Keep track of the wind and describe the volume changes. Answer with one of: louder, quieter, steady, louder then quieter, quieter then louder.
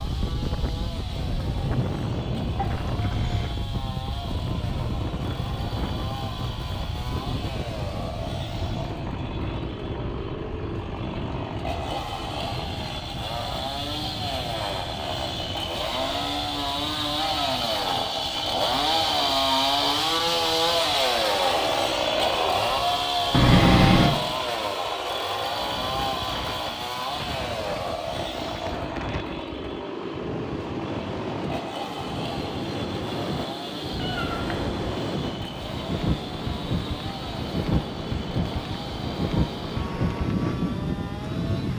quieter then louder.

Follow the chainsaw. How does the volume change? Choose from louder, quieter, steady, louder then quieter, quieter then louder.
louder then quieter.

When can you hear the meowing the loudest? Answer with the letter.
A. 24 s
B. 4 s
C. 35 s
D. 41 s
A.